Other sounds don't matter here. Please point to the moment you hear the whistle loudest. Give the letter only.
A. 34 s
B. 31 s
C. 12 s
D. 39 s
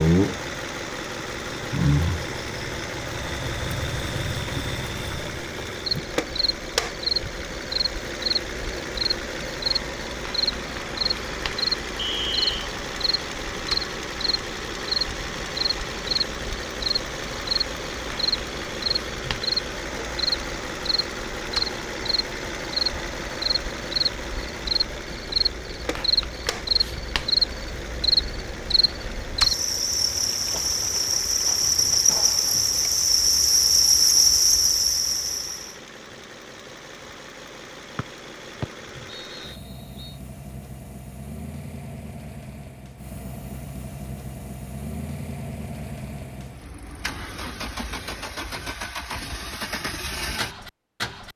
C.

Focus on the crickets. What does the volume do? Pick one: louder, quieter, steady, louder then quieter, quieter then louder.
louder.